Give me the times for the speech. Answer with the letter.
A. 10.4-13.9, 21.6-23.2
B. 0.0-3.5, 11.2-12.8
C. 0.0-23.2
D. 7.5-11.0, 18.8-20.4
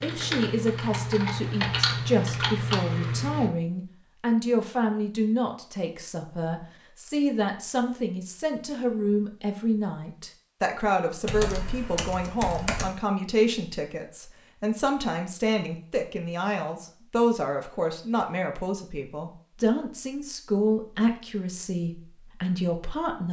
C.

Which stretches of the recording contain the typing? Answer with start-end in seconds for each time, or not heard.
0.0-3.5, 11.2-12.8.